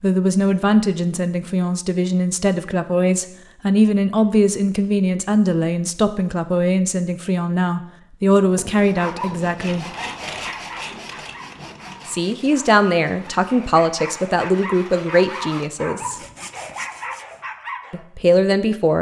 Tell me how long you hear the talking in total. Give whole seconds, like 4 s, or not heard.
15 s.